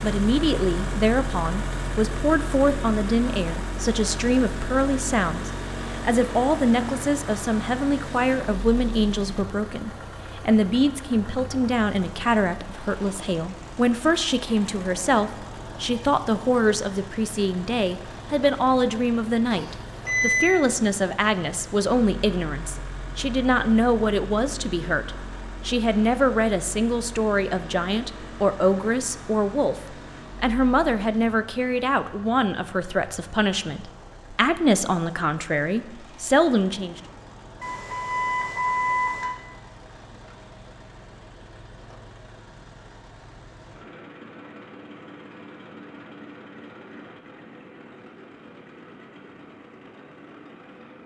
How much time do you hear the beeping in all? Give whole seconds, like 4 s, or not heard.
3 s.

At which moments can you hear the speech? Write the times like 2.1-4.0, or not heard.
0.0-37.0.